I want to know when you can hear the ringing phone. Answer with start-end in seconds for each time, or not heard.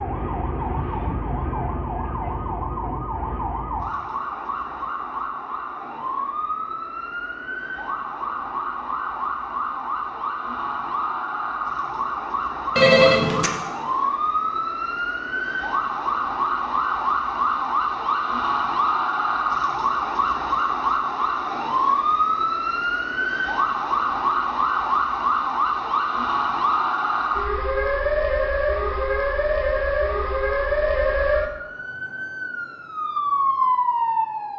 12.8-13.6.